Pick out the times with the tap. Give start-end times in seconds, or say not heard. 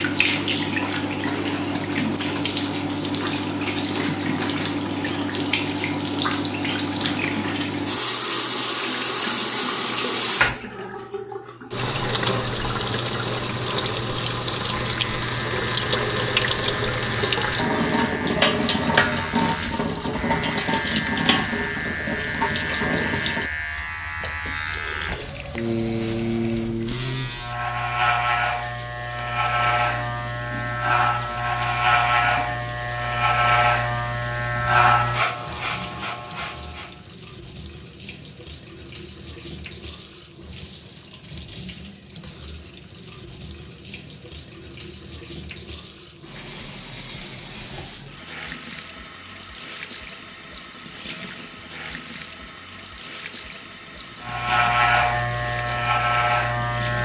0.0-57.0.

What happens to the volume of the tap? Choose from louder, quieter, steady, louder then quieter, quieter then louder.
quieter.